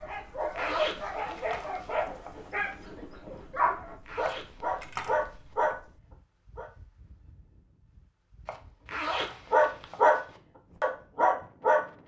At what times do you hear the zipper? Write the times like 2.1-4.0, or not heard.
0.6-2.0, 4.0-5.5, 8.8-10.4.